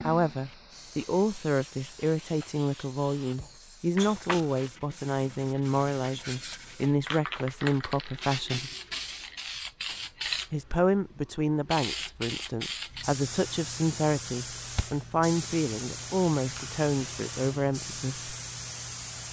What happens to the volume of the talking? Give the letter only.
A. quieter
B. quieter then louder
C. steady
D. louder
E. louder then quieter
C.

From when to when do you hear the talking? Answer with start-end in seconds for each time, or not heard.
0.0-8.7, 10.5-18.3.